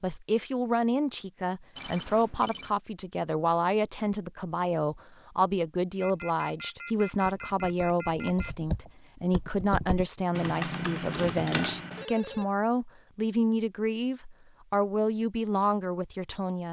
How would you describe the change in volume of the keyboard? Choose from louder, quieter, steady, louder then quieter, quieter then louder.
louder.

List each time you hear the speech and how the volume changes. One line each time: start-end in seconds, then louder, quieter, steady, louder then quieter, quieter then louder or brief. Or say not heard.
0.0-16.6 steady.